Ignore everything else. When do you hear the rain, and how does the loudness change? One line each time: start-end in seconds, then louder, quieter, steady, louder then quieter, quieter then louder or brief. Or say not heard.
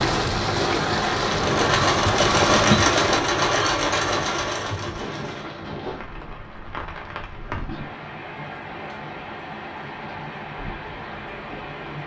0.0-12.0 quieter.